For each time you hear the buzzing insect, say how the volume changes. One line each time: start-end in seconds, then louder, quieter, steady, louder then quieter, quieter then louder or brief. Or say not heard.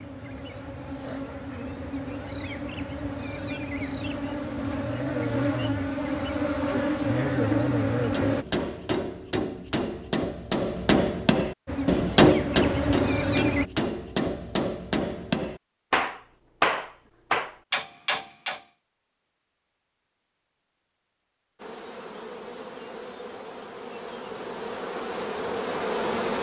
0.0-8.4 louder
11.7-13.7 brief
21.6-26.3 louder.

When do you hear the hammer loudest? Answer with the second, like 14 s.
12 s.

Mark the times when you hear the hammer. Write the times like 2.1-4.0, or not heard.
8.1-18.6.